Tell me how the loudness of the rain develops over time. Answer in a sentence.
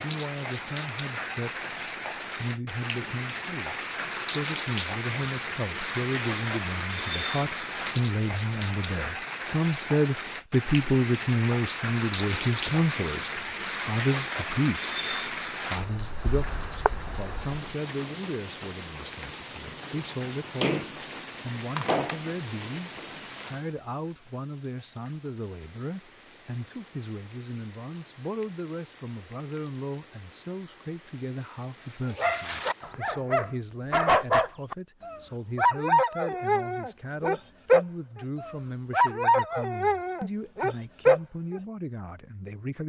The loudness of the rain goes down.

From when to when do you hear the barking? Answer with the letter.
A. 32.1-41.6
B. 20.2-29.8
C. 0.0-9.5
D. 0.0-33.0
A.